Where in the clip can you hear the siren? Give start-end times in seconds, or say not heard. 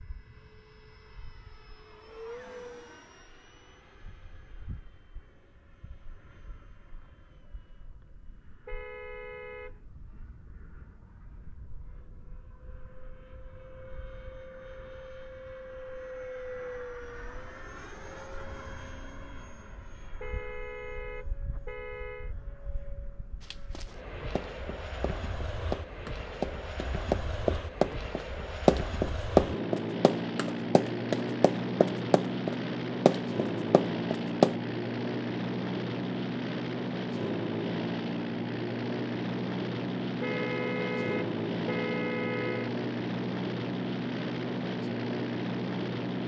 not heard.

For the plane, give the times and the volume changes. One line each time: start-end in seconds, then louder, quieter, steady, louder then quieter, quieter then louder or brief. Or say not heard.
0.0-46.2 louder.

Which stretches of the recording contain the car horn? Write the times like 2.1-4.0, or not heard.
8.7-9.8, 20.2-22.4, 40.2-42.8.